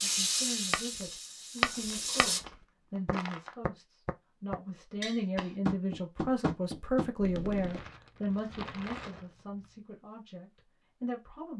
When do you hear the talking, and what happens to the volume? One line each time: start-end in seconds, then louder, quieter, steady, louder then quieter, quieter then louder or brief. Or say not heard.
0.0-11.5 louder then quieter.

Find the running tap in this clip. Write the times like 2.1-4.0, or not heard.
0.0-2.4.